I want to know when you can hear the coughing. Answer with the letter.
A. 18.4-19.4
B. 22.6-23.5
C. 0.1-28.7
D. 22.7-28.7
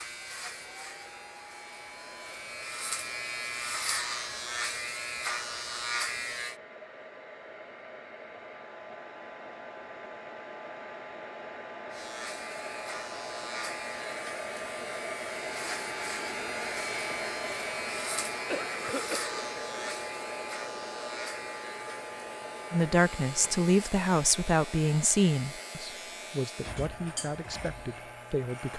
A.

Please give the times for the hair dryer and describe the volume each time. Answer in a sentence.
The hair dryer can be heard from 0.1 to 28.7 s, getting louder then quieter.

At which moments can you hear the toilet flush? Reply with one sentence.
The toilet flush can't be heard in this clip.